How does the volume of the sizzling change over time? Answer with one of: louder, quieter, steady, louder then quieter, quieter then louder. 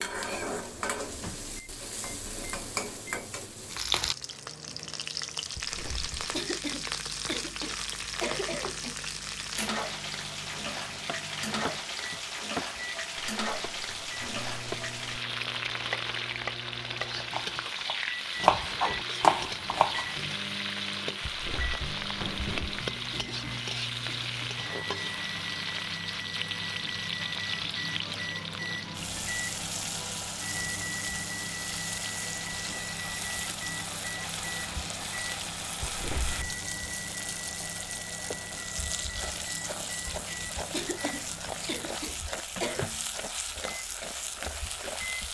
steady.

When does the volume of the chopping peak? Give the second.
19 s.